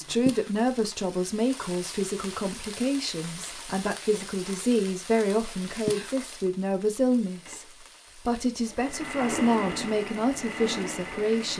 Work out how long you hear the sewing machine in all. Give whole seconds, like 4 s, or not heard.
4 s.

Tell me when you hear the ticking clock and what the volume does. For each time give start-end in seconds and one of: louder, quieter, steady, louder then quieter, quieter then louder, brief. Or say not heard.
not heard.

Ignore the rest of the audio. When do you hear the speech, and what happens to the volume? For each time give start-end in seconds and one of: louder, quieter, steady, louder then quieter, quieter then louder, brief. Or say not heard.
0.0-11.5 steady.